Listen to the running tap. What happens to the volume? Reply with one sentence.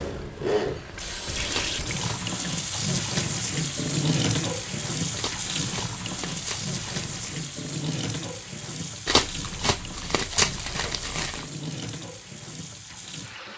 The loudness of the running tap goes down.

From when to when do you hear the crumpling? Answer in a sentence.
You can hear the crumpling from 1.4 to 2.4 s, from 5.2 to 7.5 s and from 9.1 to 11.4 s.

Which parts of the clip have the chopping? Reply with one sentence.
You can't hear the chopping here.